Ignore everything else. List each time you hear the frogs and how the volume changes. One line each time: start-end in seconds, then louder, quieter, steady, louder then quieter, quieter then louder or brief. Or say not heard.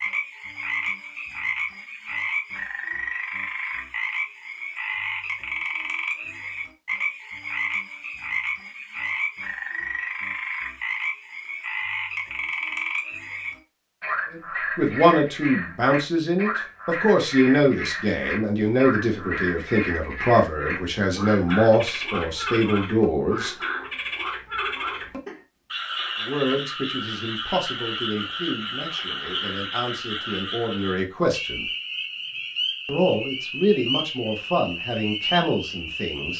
0.0-36.3 steady.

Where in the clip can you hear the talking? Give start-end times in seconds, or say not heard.
14.3-23.6, 26.2-31.6, 32.9-36.3.